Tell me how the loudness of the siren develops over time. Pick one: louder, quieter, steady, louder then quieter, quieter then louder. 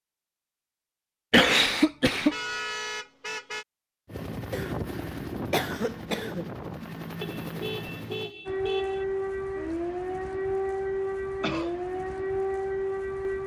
steady.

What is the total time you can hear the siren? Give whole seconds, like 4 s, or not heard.
5 s.